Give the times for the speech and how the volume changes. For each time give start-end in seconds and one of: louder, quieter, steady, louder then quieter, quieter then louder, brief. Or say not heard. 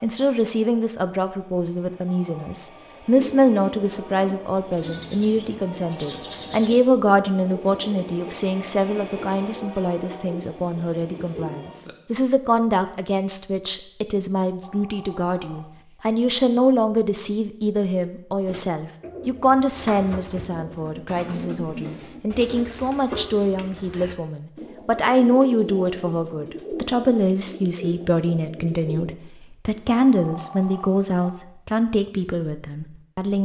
0.0-33.4 steady.